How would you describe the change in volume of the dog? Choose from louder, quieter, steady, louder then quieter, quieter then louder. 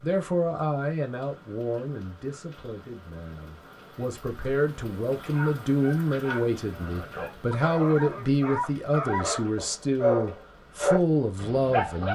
louder.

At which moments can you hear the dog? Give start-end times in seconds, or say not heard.
5.2-12.1.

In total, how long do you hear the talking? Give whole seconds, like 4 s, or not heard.
12 s.